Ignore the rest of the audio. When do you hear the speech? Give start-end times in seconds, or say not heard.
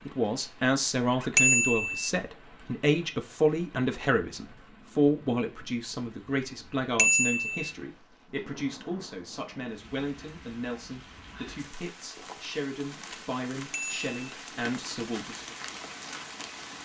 0.1-15.6.